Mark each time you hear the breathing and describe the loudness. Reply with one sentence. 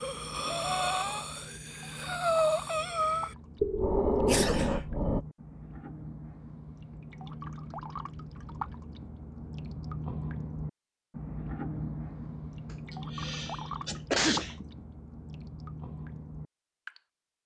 You can hear the breathing from 0.0 to 5.2 s, getting quieter then louder.